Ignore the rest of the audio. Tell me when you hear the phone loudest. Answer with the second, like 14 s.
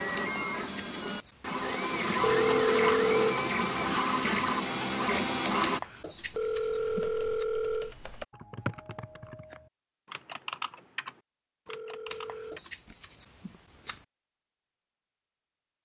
3 s.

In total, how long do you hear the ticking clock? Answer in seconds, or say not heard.
not heard.